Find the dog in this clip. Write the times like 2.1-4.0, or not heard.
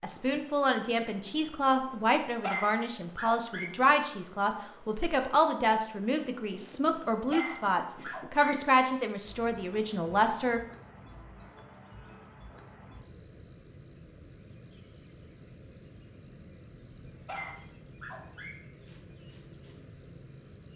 2.4-3.7, 7.3-8.5, 17.1-18.6.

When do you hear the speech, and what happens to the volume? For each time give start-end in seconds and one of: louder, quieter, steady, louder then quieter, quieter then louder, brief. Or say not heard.
0.0-10.6 steady.